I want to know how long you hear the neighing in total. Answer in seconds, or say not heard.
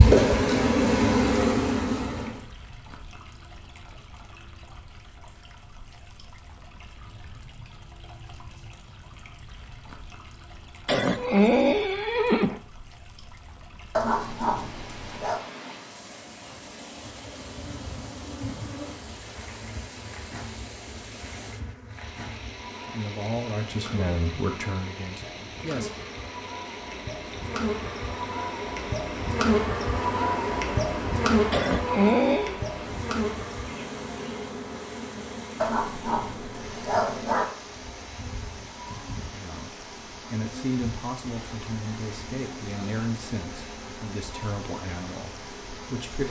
3 s.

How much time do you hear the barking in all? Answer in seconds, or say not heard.
3 s.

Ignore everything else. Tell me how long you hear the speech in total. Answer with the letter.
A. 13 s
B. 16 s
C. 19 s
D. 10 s
D.